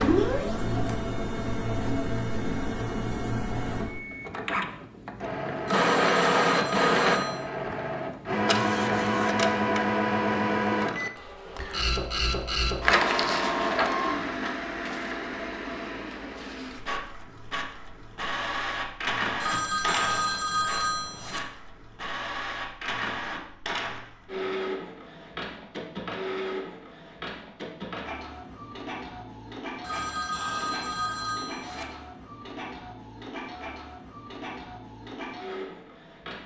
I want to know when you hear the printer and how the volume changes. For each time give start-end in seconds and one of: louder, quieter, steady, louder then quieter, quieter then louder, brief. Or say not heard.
0.0-36.4 quieter.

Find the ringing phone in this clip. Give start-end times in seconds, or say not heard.
5.7-7.4, 19.4-21.4, 29.8-31.9.